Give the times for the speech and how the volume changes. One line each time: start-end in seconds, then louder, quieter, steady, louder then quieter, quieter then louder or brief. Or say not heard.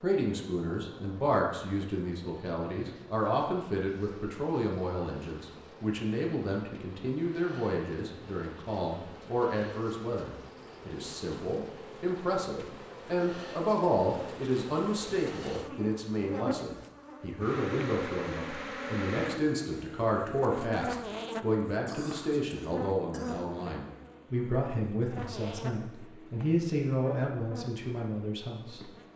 0.0-28.9 steady.